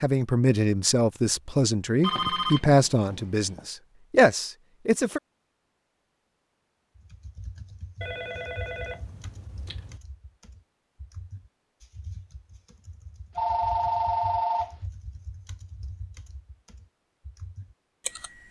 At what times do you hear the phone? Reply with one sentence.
The phone can be heard from 2.0 to 3.6 s, from 8.0 to 9.9 s and from 13.3 to 14.8 s.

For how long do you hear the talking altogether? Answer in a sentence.
You can hear the talking for 5 seconds altogether.